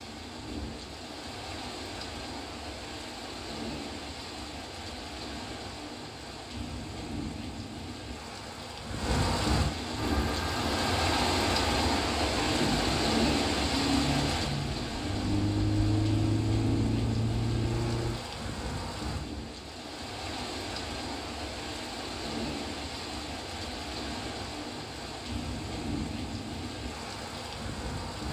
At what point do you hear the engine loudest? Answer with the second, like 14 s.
16 s.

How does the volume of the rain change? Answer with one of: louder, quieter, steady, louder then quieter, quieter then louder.
louder then quieter.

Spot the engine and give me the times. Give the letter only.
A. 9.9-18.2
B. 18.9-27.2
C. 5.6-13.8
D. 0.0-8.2
A.